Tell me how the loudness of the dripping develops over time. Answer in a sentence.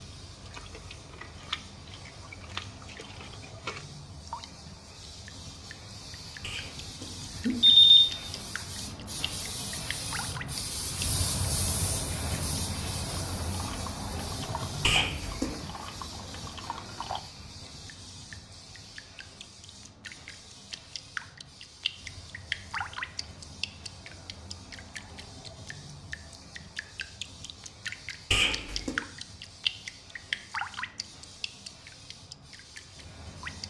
The loudness of the dripping goes up.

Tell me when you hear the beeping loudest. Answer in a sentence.
The volume of the beeping peaks at 8 seconds.